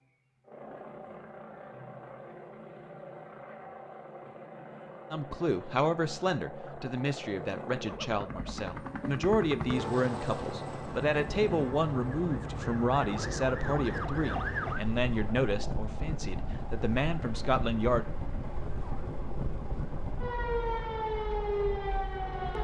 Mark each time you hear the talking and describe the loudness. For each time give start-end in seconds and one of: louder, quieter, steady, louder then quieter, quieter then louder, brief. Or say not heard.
5.1-18.1 steady.